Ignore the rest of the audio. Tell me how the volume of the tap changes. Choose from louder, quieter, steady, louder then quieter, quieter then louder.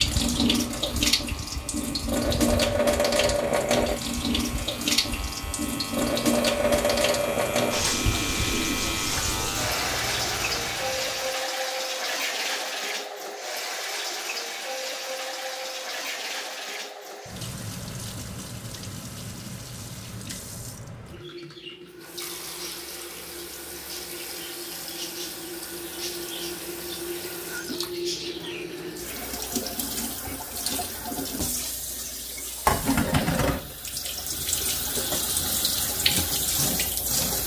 quieter then louder.